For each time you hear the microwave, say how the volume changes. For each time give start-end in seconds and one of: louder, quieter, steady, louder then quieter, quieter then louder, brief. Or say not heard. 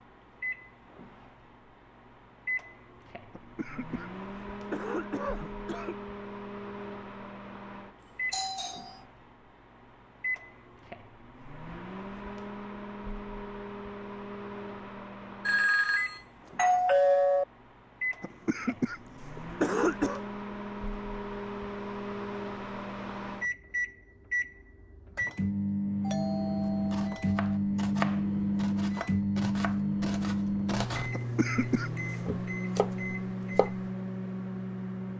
0.0-35.1 louder.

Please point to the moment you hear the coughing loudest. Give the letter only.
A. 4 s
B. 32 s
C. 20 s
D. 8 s
C.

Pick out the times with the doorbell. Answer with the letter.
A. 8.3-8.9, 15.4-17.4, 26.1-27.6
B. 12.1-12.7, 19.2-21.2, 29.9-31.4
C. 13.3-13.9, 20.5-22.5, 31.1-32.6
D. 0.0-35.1
A.